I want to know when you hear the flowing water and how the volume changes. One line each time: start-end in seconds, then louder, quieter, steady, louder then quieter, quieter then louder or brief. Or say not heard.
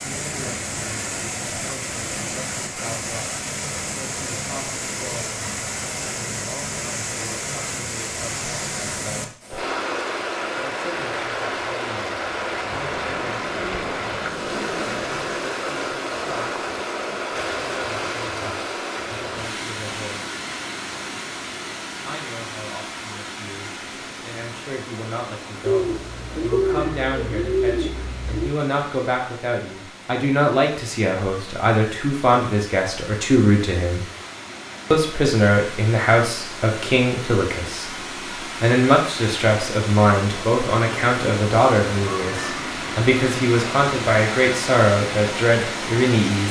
0.0-46.4 quieter then louder.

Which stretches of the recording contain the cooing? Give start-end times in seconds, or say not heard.
12.9-15.6, 25.6-28.6.